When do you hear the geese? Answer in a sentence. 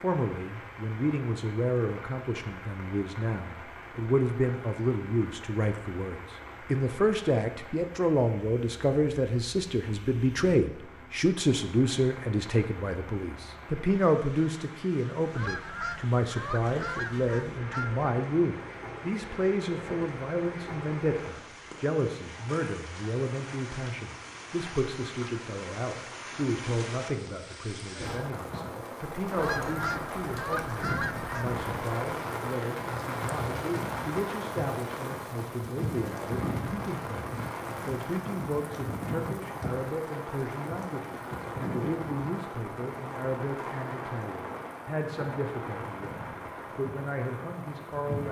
You can hear the geese from 15.3 to 18.1 s and from 29.4 to 31.6 s.